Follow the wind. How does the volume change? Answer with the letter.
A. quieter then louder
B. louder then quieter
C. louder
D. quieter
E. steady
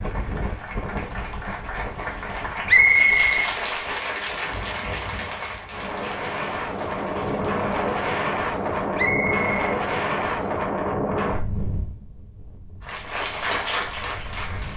B.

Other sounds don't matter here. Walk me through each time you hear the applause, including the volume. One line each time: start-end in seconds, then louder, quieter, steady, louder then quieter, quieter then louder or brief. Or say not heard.
0.0-9.1 louder then quieter
12.8-14.7 brief.